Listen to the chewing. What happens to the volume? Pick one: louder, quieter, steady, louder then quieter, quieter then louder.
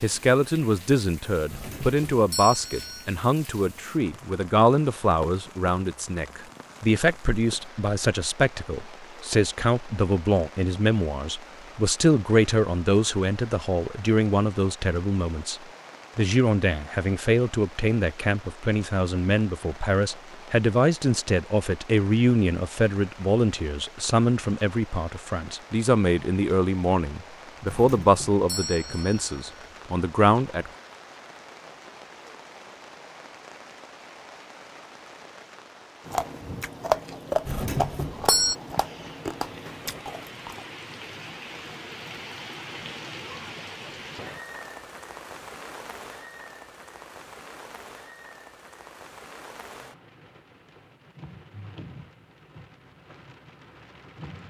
quieter.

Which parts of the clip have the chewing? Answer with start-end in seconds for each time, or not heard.
36.0-40.6.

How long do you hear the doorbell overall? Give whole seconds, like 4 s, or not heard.
5 s.